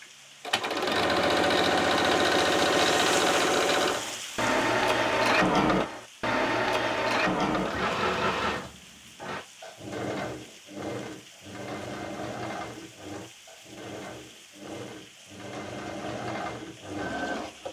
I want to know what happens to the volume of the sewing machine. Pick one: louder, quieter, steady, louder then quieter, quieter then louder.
quieter.